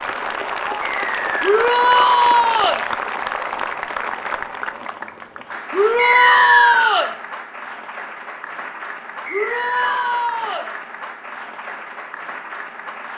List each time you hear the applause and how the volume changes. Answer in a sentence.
The applause can be heard from 0.0 to 13.1 s, getting quieter.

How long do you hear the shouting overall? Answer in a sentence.
You can hear the shouting for 4 seconds altogether.